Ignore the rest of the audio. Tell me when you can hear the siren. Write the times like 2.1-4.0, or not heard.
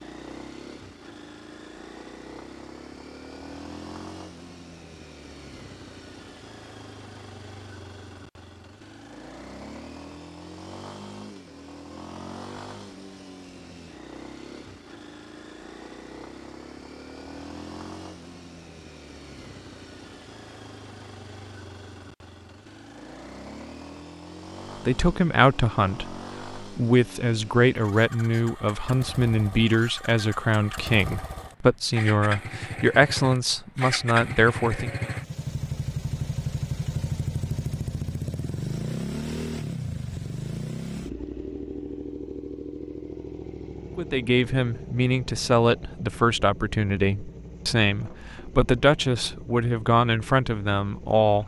not heard.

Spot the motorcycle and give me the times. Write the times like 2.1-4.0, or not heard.
0.0-51.4.